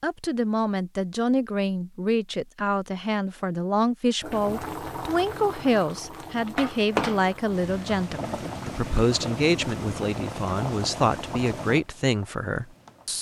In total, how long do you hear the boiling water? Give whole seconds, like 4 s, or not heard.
9 s.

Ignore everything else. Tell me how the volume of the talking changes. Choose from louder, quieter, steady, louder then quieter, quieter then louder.
steady.